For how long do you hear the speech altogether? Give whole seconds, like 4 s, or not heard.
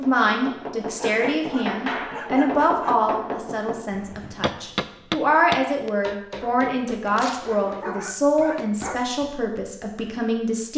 11 s.